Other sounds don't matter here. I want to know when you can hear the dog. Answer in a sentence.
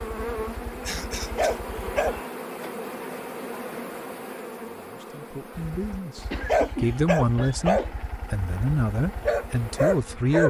The dog can be heard from 0.0 to 2.2 s and from 5.5 to 10.4 s.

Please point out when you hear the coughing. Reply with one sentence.
The coughing can be heard from 0.8 to 1.6 s and from 6.3 to 8.1 s.